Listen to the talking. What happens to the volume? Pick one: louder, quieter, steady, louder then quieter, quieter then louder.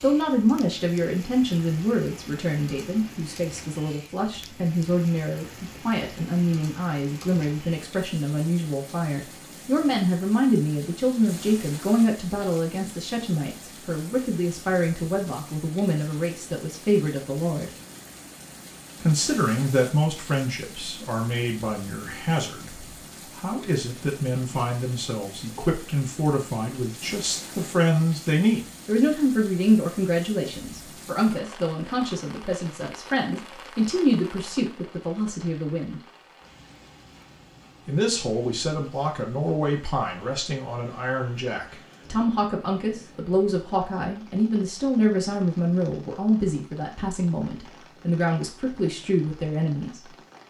steady.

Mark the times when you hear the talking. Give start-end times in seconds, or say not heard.
0.0-17.7, 19.0-36.0, 37.9-50.1.